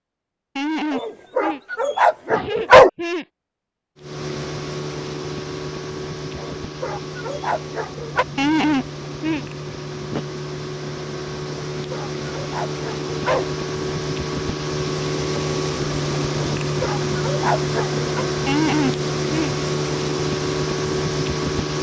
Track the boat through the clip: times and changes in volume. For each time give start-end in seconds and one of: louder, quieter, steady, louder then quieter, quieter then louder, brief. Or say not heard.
4.0-21.7 louder.